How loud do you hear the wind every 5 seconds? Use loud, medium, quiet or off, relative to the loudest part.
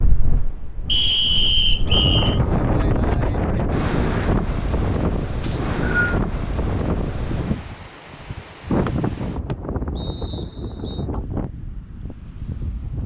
loud, loud, medium.